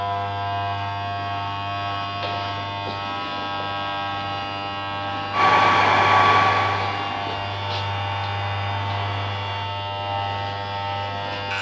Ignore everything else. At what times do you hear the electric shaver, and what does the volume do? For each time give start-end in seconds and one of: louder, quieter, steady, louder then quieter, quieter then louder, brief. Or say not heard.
0.0-11.5 steady.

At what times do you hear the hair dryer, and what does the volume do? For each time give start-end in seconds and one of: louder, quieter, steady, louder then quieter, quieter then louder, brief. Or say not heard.
5.3-9.7 quieter.